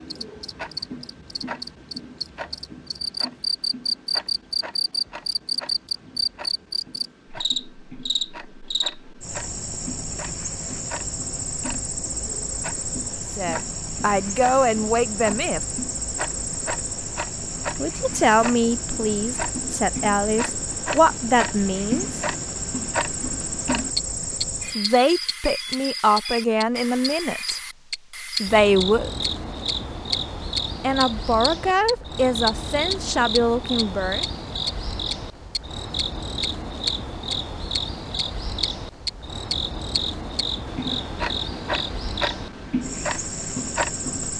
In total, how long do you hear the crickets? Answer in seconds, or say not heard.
44 s.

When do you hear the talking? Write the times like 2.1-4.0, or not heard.
13.3-15.6, 17.8-22.2, 24.8-27.6, 28.4-29.2, 30.8-34.2.